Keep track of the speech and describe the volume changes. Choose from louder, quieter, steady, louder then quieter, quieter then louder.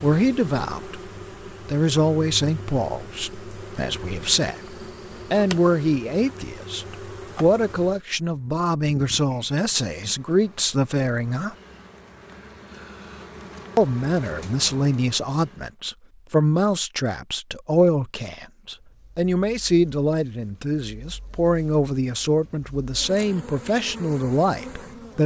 steady.